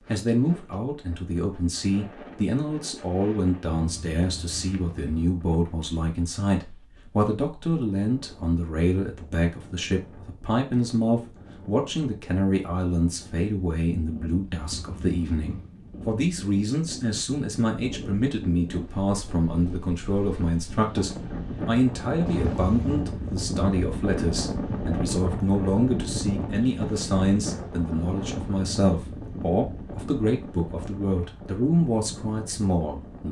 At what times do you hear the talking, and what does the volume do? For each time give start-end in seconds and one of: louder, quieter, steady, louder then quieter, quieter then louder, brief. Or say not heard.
0.1-33.2 steady.